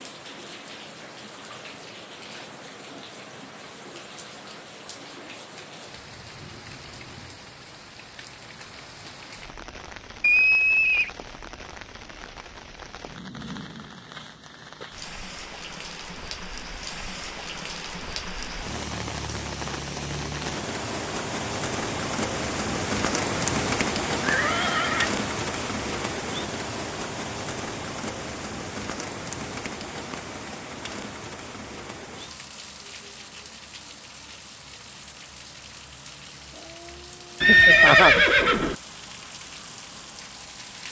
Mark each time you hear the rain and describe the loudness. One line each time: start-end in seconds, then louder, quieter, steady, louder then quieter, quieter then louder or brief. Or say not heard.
0.0-40.8 louder then quieter.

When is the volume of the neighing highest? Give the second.
38 s.